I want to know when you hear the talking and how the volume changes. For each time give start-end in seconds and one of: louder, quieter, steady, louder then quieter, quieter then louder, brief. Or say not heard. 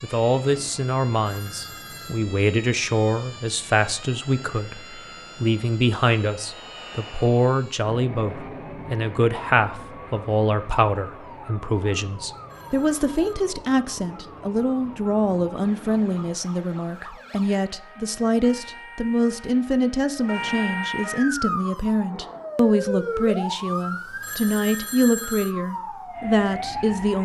0.0-27.2 steady.